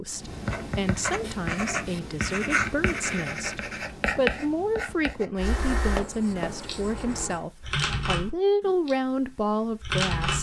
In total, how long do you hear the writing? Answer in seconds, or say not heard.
7 s.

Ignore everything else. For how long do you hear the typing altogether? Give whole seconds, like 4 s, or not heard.
5 s.